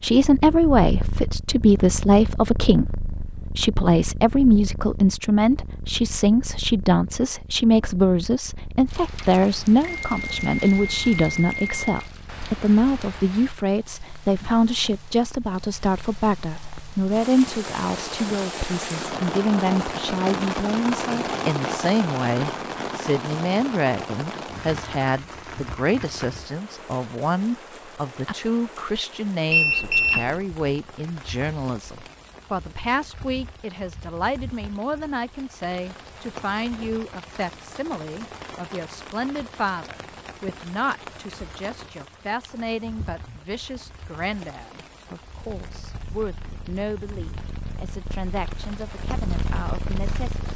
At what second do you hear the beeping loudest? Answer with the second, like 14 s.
30 s.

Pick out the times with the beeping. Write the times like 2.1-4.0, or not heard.
9.4-12.0, 29.5-30.3.